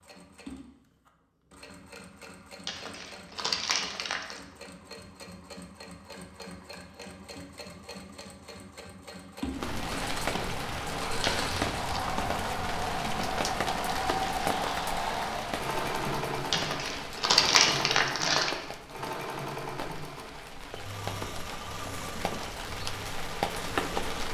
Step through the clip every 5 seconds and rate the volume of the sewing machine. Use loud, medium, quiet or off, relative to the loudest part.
quiet, medium, loud, loud, medium.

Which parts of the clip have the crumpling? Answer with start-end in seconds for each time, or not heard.
2.6-4.4, 11.2-12.0, 16.5-18.6.